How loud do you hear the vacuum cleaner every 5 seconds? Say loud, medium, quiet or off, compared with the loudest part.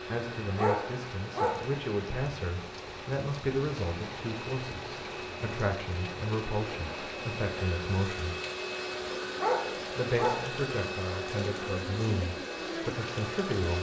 medium, loud, loud.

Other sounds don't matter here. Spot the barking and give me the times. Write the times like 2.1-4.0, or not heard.
0.6-1.7, 9.3-10.5.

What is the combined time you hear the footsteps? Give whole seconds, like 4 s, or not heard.
not heard.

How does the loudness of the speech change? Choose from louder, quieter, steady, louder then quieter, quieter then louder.
steady.